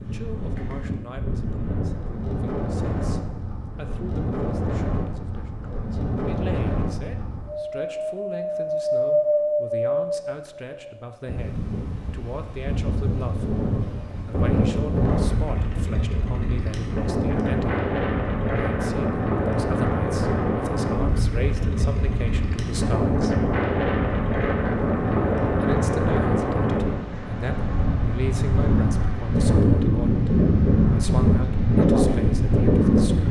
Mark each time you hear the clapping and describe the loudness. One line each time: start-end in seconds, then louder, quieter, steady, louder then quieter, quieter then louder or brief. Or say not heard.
not heard.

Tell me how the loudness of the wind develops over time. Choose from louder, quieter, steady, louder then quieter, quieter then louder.
louder.